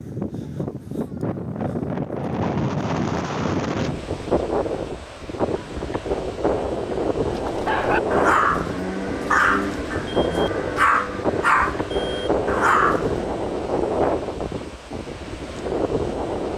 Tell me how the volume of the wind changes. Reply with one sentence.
The volume of the wind stays about the same.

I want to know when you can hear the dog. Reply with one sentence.
You can hear the dog from 7.2 to 13.4 s.